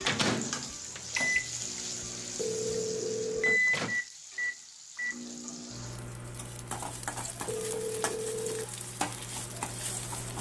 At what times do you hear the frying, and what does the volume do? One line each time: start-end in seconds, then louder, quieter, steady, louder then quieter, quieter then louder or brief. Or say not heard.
0.0-10.3 quieter then louder.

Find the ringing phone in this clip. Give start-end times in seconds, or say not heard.
2.4-3.6, 7.5-8.7.